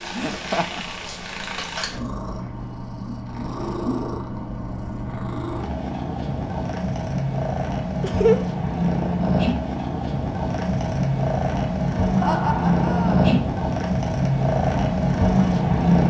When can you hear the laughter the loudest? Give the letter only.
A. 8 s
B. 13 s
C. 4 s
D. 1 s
A.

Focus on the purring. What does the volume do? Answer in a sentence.
The volume of the purring goes up.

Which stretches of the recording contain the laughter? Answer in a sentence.
The laughter can be heard from 0.1 to 0.8 s, from 8.0 to 8.4 s and from 12.2 to 13.2 s.